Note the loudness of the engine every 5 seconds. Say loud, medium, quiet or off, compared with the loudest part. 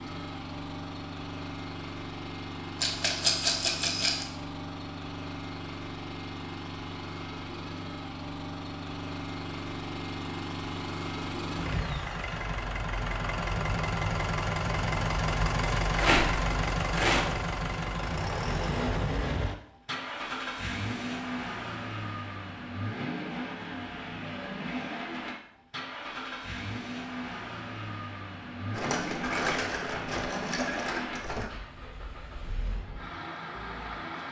medium, medium, loud, loud, medium, medium, medium.